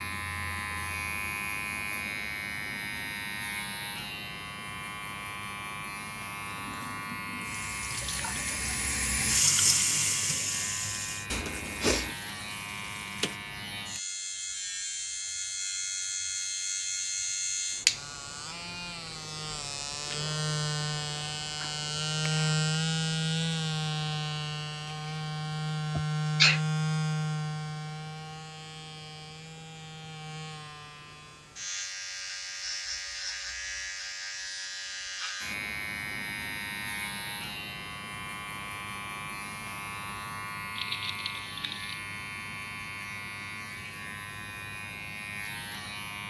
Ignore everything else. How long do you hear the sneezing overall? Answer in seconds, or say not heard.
3 s.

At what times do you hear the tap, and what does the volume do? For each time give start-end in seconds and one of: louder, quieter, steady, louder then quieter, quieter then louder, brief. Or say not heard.
6.4-13.6 louder then quieter.